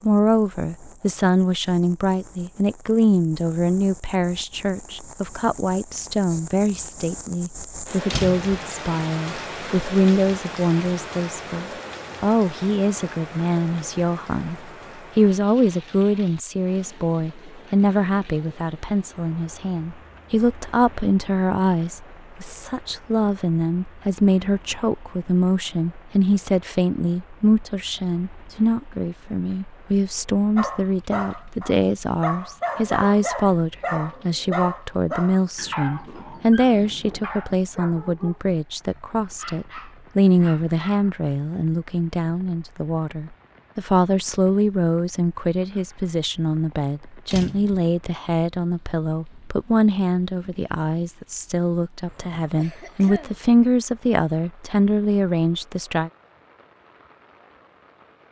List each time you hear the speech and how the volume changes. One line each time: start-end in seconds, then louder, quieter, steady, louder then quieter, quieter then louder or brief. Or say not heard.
0.0-56.1 steady.